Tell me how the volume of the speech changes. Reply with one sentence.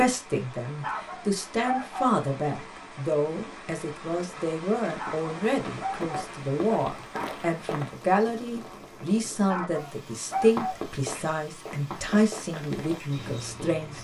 The loudness of the speech stays about the same.